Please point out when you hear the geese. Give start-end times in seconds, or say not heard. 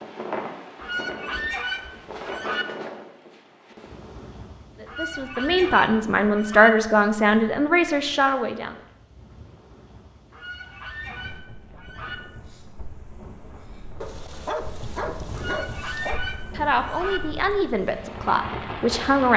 0.8-2.6, 4.8-6.7, 10.3-12.2, 15.3-17.2.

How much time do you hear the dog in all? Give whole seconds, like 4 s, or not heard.
2 s.